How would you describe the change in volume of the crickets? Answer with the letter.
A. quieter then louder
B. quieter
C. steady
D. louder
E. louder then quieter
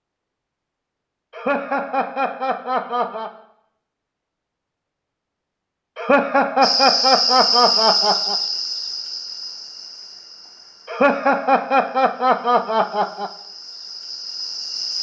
A.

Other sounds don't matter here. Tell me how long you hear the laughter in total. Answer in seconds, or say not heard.
7 s.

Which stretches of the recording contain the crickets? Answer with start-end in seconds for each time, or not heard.
6.6-14.9.